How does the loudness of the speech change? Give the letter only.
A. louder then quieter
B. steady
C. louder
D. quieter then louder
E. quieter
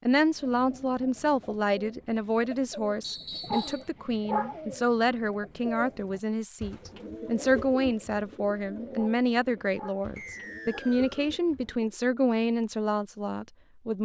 B.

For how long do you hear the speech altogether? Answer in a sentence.
The speech can be heard for 14 seconds in total.